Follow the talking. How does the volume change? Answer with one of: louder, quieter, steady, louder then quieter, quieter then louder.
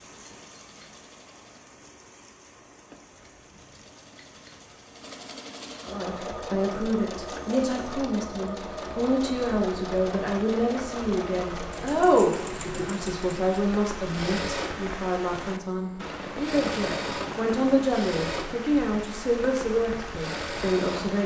steady.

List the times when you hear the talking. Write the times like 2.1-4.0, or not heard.
5.9-21.2.